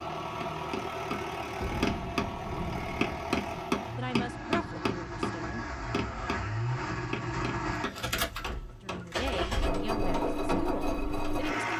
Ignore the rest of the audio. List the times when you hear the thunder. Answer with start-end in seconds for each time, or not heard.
1.6-3.4.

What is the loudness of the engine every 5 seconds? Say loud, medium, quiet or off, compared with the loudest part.
medium, loud, loud.